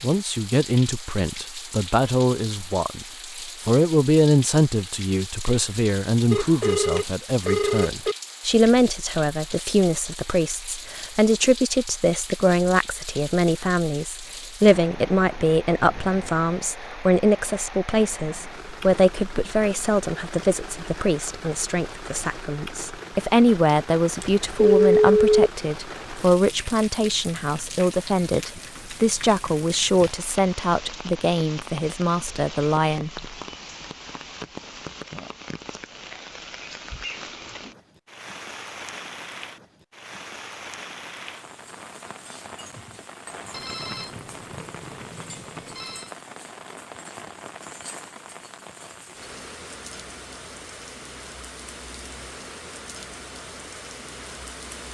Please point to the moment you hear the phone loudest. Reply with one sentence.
The loudest moment of the phone is at 25 seconds.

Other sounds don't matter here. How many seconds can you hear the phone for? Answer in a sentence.
You can hear the phone for 6 seconds altogether.